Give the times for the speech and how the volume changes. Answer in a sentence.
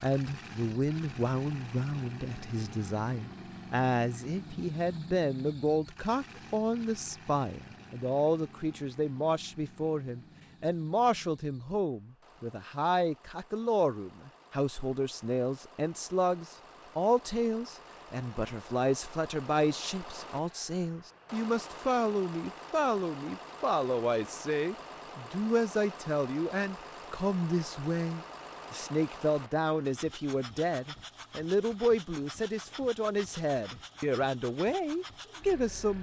The speech can be heard from 0.0 to 35.9 s, at a steady volume.